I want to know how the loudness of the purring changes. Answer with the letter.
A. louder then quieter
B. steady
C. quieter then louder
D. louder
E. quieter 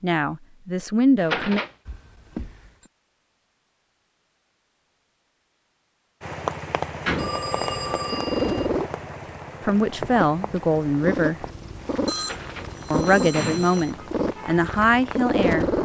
C.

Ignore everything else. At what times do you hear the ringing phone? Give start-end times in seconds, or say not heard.
1.9-2.9, 7.2-8.7, 12.1-13.9.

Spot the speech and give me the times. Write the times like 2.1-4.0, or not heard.
0.0-1.6, 9.7-11.4, 12.9-15.7.